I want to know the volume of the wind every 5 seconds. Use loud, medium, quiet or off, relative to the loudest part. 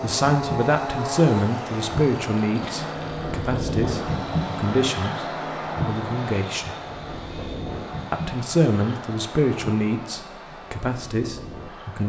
loud, loud, medium.